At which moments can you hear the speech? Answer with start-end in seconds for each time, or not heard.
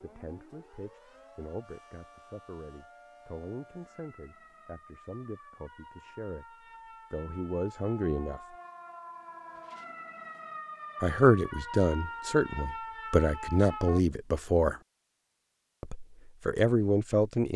0.0-8.4, 11.0-14.8, 15.8-17.5.